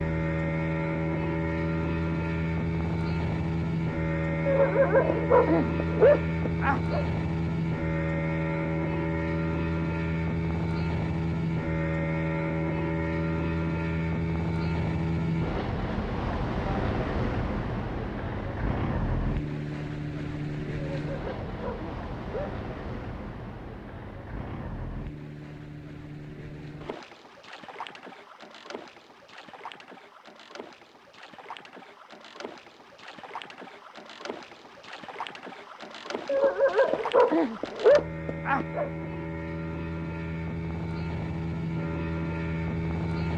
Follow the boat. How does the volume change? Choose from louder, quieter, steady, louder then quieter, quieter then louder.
quieter then louder.